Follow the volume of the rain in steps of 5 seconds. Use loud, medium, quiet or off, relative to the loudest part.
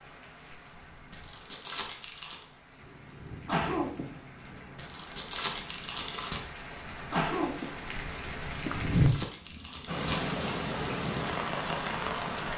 quiet, loud, loud.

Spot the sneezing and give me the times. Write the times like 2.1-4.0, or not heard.
3.5-4.0, 7.1-9.6.